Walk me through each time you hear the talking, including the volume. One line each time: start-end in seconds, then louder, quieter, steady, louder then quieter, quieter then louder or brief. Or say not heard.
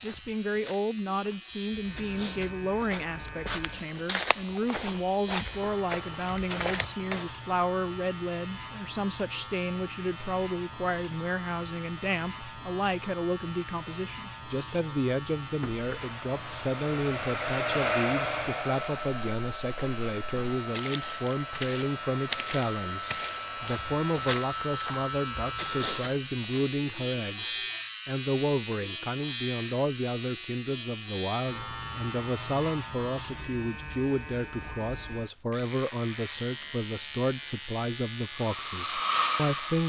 0.0-39.8 steady.